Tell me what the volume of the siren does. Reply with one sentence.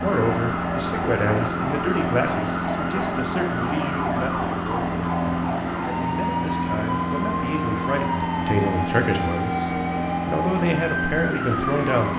The volume of the siren stays about the same.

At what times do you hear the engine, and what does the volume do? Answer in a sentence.
You can hear the engine from 0.0 to 12.1 s, at a steady volume.